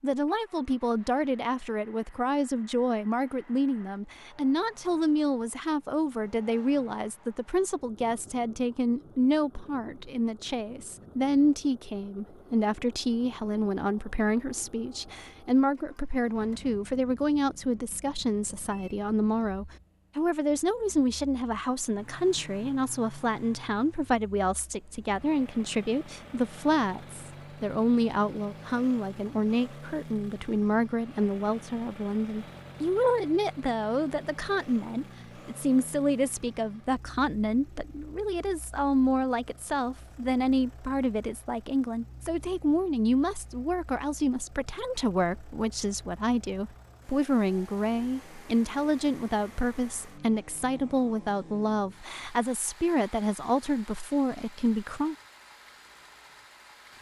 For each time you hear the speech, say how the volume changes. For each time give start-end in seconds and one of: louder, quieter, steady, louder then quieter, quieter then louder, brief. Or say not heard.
0.0-55.1 steady.